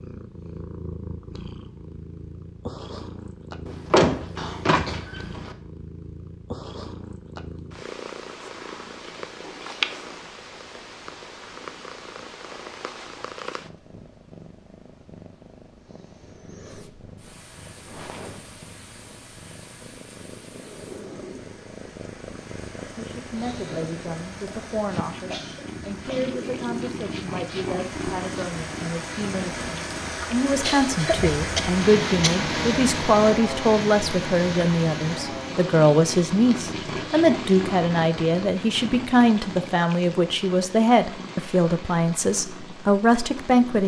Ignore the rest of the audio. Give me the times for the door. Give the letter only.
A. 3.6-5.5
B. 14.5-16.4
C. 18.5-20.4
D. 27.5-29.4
A.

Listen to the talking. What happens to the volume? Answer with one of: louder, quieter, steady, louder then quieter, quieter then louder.
louder.